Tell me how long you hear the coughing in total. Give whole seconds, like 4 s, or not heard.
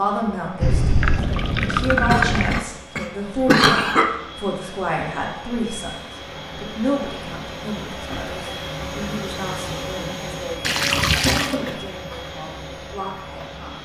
3 s.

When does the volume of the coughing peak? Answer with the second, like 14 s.
4 s.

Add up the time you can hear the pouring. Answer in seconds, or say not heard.
3 s.